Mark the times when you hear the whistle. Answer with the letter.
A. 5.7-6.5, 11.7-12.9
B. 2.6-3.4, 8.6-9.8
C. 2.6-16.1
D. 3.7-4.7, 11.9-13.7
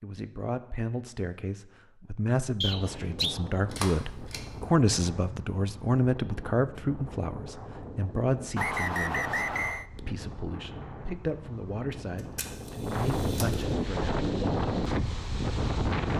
B.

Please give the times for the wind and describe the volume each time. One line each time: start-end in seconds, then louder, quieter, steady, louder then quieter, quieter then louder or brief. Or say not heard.
2.6-16.1 louder.